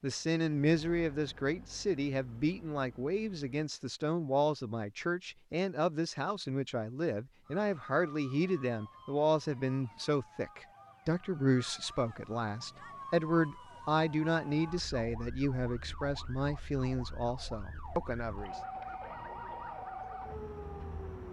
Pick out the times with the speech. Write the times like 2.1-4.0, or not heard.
0.0-18.6.